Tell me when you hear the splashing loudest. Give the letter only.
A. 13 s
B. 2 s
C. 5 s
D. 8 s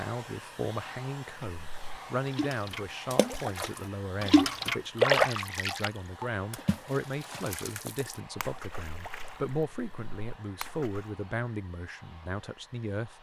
C.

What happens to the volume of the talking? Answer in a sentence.
The volume of the talking stays about the same.